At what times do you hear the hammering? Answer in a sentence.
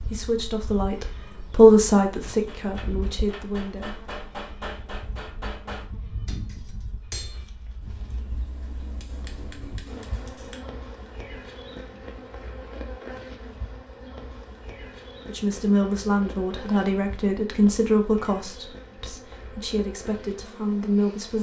The hammering can be heard from 2.2 to 10.6 s.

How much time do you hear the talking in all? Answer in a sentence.
You can hear the talking for 10 seconds altogether.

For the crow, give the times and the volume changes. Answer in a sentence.
You can't hear the crow here.